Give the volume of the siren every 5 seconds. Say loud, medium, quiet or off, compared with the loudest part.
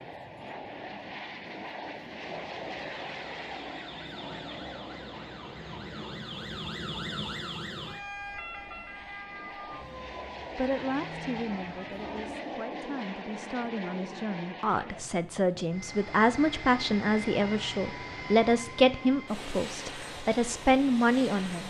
medium, loud, medium, off, off.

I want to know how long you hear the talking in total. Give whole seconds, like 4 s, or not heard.
11 s.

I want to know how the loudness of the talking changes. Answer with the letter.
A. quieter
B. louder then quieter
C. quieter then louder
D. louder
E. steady
D.